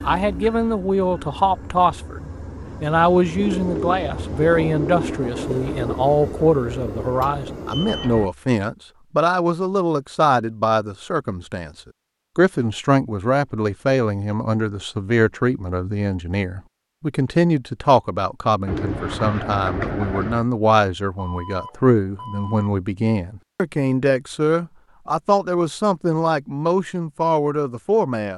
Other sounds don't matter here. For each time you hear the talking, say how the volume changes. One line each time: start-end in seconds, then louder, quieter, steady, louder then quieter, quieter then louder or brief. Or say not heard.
0.0-11.7 steady
12.3-28.3 steady.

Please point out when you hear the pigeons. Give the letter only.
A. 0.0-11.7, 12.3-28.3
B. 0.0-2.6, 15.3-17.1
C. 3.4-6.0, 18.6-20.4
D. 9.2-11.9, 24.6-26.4
C.